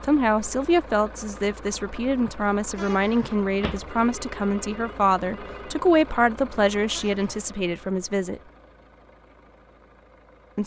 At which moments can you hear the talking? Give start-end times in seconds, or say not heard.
0.0-8.4.